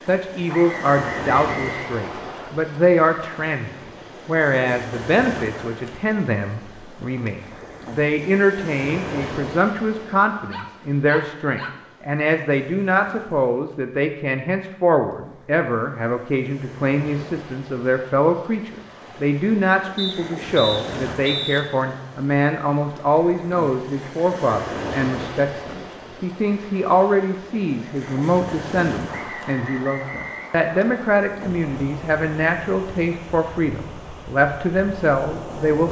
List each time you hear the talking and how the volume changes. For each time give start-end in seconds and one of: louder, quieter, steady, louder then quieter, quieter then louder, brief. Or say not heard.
0.0-35.8 steady.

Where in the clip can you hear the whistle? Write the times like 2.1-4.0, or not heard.
0.5-2.5, 19.9-21.6, 29.1-31.1.